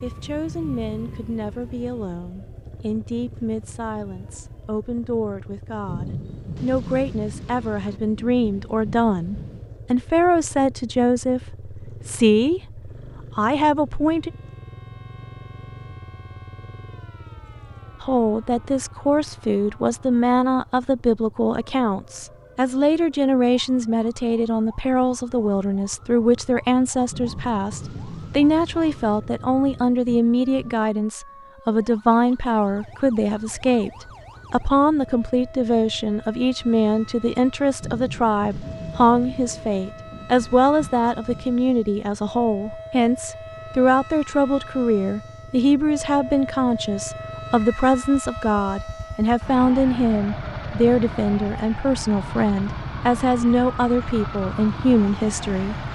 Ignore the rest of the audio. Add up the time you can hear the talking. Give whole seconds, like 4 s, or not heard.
52 s.